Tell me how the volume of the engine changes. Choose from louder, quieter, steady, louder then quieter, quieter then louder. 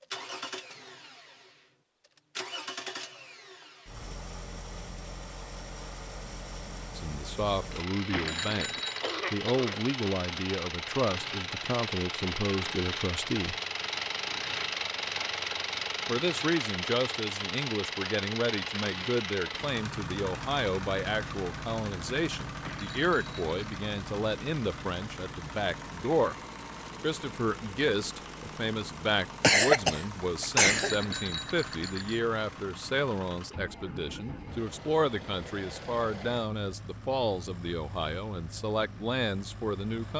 louder then quieter.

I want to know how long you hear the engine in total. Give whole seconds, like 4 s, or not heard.
40 s.